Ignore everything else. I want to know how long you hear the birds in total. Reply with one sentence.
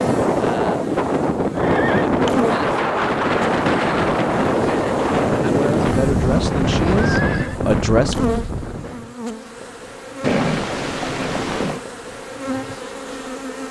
The birds can't be heard in this clip.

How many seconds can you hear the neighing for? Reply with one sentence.
The neighing can be heard for 3 seconds in total.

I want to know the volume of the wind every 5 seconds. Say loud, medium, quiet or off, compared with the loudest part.
loud, loud, off.